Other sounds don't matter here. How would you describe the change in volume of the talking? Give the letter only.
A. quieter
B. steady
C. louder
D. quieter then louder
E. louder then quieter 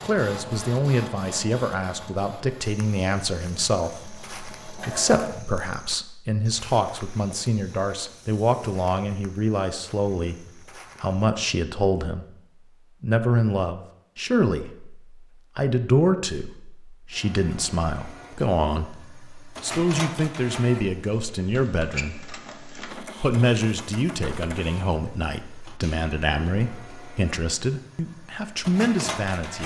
B.